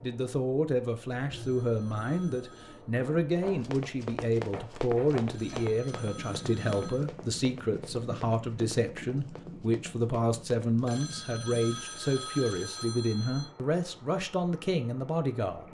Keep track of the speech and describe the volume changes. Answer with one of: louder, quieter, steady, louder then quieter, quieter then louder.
steady.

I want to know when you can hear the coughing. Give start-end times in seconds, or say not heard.
not heard.